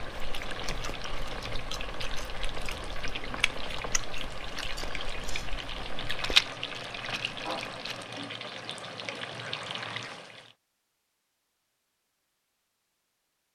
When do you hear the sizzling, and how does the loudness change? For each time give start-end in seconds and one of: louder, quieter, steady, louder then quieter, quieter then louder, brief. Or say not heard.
0.0-10.6 steady.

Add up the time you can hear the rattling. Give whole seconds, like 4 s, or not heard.
2 s.